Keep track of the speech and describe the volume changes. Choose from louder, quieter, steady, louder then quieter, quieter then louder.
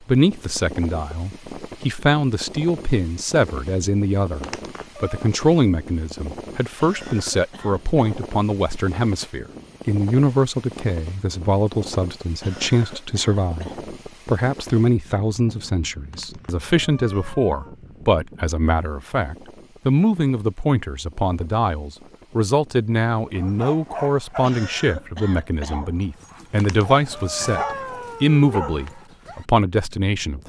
steady.